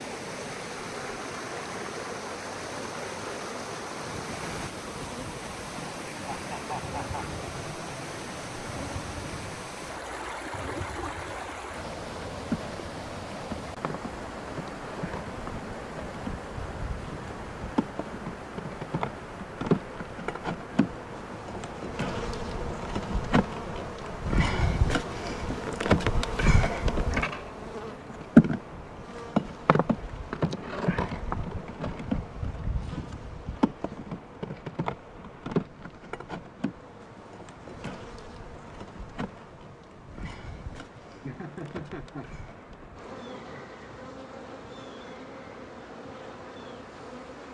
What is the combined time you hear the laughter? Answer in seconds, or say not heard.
2 s.